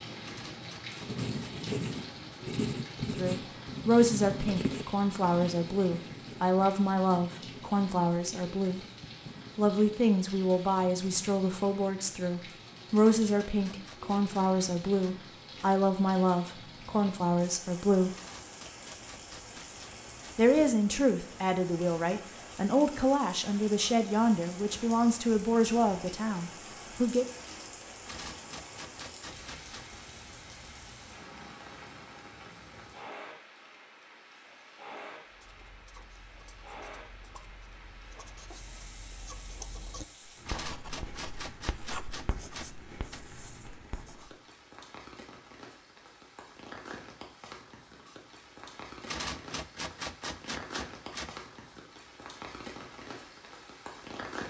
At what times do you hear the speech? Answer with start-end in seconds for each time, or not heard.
3.1-8.8, 9.6-18.1, 20.4-27.2.